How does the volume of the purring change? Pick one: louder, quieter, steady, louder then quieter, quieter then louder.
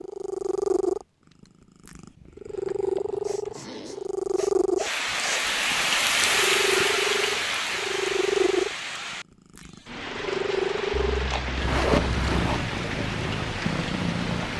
steady.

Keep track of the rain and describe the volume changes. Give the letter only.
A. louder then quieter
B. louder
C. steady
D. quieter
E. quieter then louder
D.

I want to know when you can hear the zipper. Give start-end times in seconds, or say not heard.
2.5-4.1, 10.9-12.7.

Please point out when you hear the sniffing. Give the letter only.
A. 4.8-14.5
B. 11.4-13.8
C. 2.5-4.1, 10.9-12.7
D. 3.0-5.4
D.